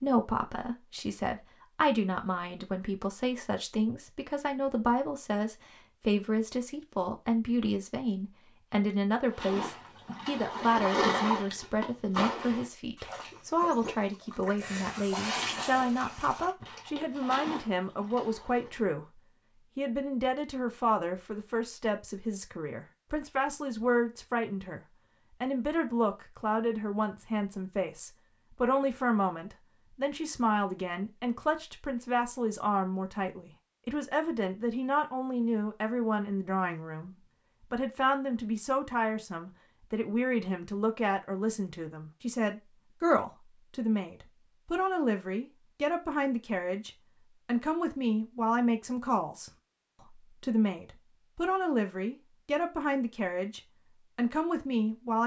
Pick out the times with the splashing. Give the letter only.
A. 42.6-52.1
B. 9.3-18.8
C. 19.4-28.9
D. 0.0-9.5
B.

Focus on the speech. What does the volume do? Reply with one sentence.
The loudness of the speech stays about the same.